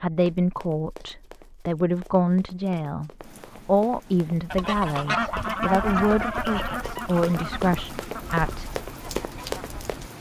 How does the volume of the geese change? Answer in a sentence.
The loudness of the geese goes down.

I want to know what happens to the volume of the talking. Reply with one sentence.
The volume of the talking stays about the same.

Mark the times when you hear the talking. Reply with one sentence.
The talking can be heard from 0.0 to 8.8 s.